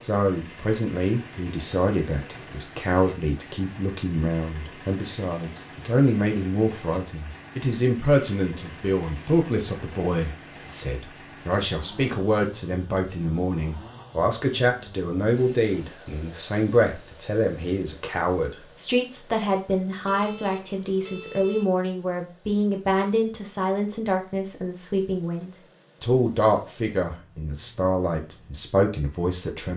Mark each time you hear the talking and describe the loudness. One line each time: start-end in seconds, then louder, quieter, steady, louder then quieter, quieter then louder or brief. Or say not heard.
0.0-29.7 steady.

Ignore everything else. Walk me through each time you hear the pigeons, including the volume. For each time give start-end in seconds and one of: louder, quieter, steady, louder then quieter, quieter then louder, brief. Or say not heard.
not heard.